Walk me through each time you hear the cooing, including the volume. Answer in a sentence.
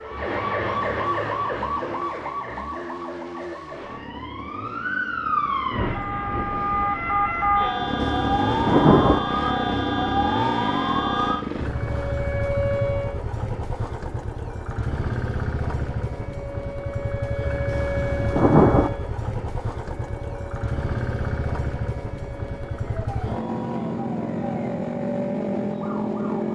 You can't hear the cooing here.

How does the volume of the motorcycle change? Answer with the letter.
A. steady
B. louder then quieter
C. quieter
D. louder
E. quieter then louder
D.